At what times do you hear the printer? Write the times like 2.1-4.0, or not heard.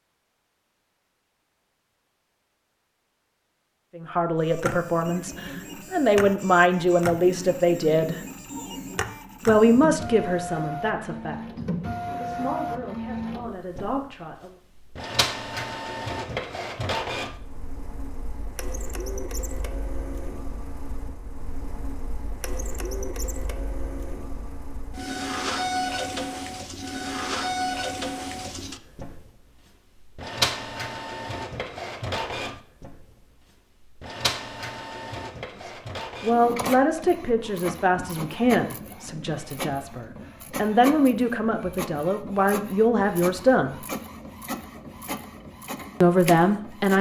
4.4-46.9.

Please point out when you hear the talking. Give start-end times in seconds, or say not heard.
4.0-8.2, 9.4-14.6, 35.6-43.8, 46.0-46.9.